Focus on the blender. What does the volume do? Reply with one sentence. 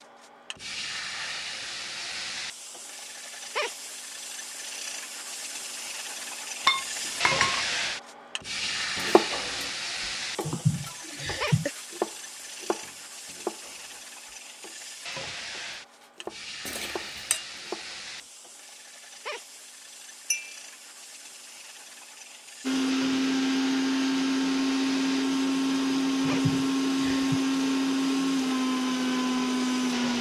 The volume of the blender stays about the same.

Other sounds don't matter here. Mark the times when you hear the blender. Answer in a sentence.
You can hear the blender from 22.6 to 30.1 s.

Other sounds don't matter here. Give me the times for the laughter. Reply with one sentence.
You can hear the laughter from 10.4 to 11.7 s and from 26.2 to 27.4 s.